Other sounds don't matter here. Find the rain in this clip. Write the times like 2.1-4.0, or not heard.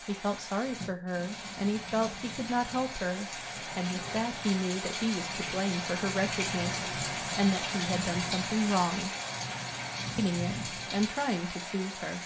0.0-12.2.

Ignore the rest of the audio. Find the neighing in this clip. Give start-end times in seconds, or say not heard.
not heard.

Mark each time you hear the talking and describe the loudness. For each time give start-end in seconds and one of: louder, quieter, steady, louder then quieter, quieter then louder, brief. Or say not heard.
0.1-9.1 steady
10.2-12.2 brief.